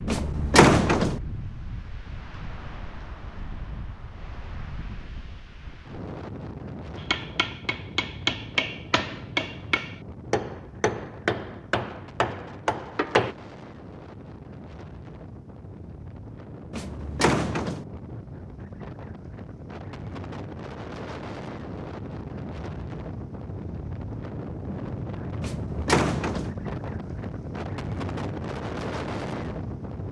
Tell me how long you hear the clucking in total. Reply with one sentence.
The clucking can't be heard in this clip.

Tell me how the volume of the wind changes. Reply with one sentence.
The loudness of the wind goes up.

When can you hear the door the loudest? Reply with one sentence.
The volume of the door peaks at 1 second.